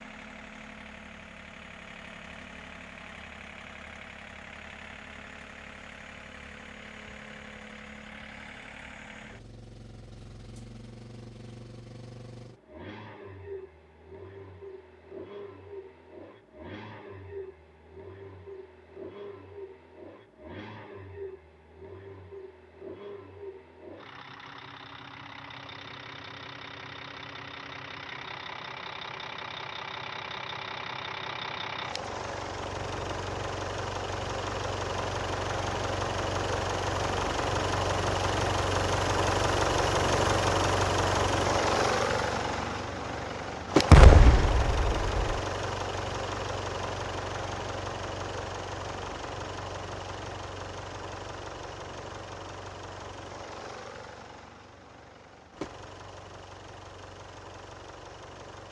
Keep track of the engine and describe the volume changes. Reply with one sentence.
The volume of the engine goes up, then down.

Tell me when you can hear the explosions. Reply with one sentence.
The explosions can be heard from 43.9 to 45.2 s.